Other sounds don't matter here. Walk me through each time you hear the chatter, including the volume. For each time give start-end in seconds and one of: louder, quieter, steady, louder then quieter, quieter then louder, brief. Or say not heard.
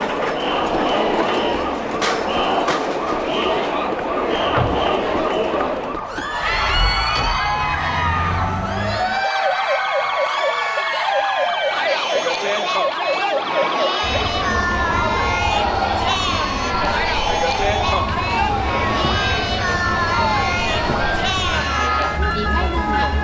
0.0-23.1 steady.